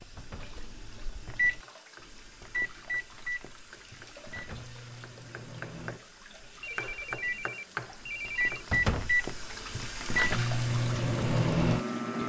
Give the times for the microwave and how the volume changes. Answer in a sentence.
The microwave can be heard from 0.0 to 12.2 s, getting quieter then louder.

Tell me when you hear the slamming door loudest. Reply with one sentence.
The loudest moment of the slamming door is at 9 seconds.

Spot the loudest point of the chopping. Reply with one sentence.
The loudest moment of the chopping is at 8 seconds.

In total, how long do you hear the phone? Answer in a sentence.
The phone can be heard for 2 seconds in total.